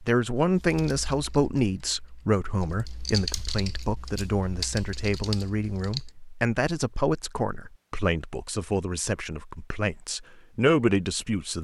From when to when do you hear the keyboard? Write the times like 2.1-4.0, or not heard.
0.6-6.1.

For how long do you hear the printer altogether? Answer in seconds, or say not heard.
not heard.